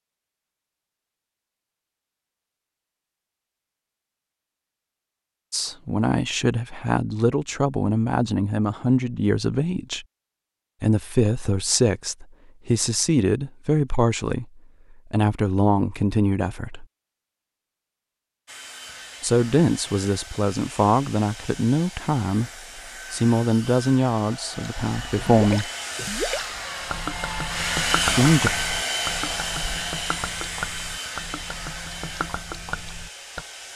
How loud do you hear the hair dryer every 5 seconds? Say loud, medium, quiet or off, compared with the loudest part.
off, off, off, quiet, quiet, loud, medium.